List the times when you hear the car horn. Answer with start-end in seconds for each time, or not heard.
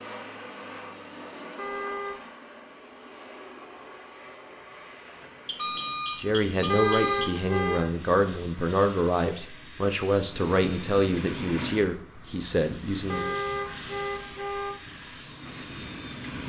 1.6-2.2, 6.7-8.0, 13.1-14.8.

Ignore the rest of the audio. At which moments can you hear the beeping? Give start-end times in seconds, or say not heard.
5.5-7.4.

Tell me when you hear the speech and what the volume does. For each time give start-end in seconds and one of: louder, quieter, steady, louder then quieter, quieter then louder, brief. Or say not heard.
6.2-13.4 steady.